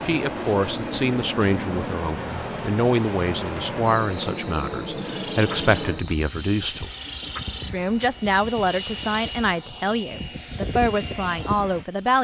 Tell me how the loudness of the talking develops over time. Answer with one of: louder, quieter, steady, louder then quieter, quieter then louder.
steady.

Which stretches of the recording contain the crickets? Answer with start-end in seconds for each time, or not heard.
0.0-8.2.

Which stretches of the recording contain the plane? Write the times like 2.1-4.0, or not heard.
0.0-12.1.